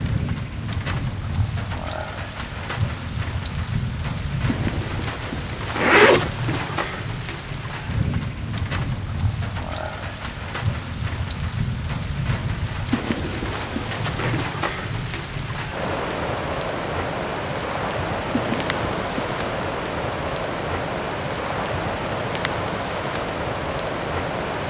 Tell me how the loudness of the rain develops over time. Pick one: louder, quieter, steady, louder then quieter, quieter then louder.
steady.